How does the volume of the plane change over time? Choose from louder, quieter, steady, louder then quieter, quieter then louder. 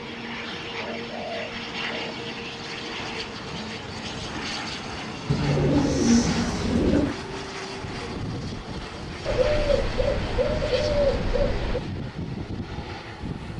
steady.